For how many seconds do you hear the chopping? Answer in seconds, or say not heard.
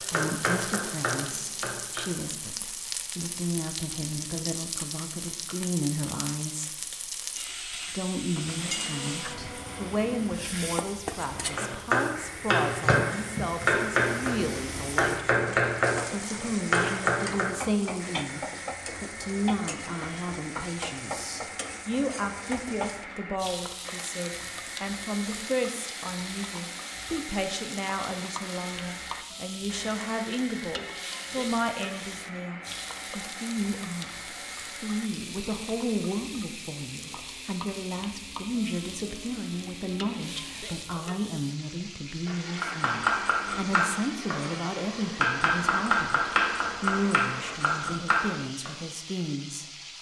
14 s.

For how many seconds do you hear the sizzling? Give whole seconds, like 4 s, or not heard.
50 s.